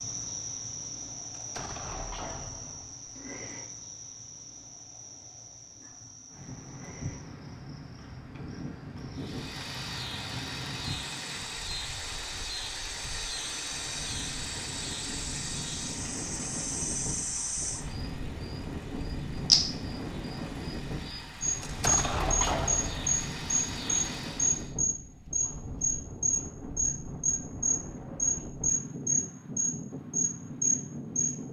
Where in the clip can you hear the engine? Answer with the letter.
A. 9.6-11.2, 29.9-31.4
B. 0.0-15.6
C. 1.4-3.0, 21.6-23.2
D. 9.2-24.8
D.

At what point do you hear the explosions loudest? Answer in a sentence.
The volume of the explosions peaks at 22 seconds.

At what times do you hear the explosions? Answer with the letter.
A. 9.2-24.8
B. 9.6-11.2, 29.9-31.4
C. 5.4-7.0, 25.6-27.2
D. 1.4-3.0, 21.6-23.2
D.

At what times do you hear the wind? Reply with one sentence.
The wind can be heard from 6.3 to 31.4 s.